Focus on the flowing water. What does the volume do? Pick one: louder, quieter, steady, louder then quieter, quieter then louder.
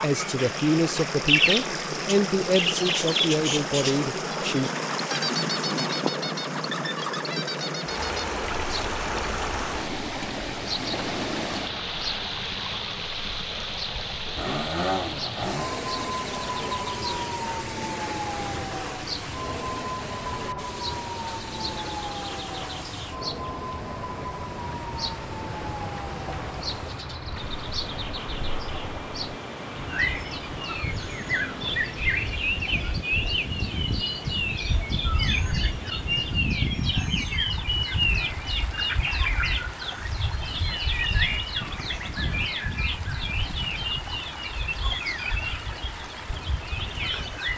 quieter.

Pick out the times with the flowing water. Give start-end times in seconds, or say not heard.
0.0-47.5.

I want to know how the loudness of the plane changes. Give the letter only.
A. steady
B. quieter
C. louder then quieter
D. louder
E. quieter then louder
B.